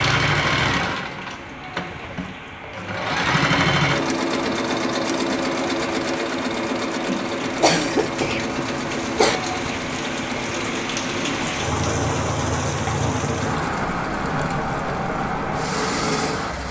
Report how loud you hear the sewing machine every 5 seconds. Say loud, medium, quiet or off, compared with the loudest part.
loud, loud, medium, medium.